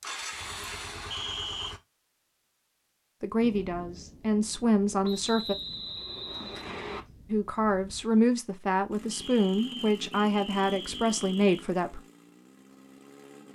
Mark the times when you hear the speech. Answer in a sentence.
You can hear the speech from 3.2 to 5.5 s and from 7.3 to 12.0 s.